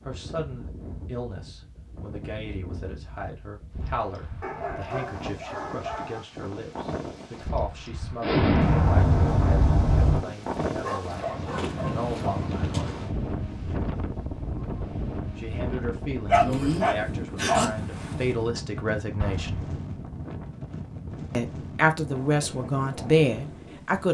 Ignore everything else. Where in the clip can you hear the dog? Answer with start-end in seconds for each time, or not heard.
4.4-6.2, 10.8-12.5, 16.2-17.6.